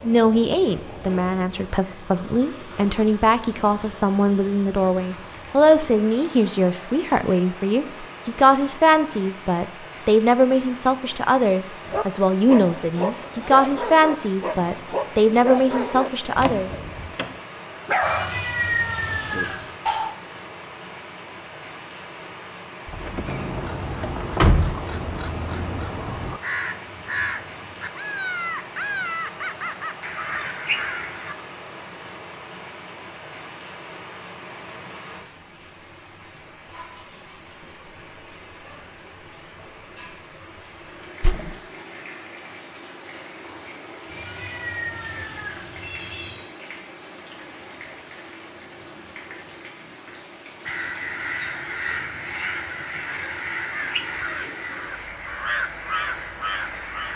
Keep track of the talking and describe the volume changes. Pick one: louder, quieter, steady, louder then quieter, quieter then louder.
steady.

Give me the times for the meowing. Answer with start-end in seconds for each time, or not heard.
18.0-19.7, 44.0-46.5.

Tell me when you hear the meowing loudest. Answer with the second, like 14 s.
19 s.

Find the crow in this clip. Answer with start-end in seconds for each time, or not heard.
23.2-31.4, 50.6-57.1.